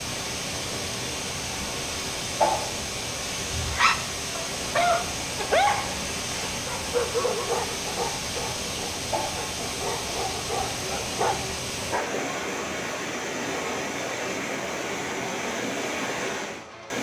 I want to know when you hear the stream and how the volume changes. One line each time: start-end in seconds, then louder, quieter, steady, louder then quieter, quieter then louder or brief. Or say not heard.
0.0-16.9 steady.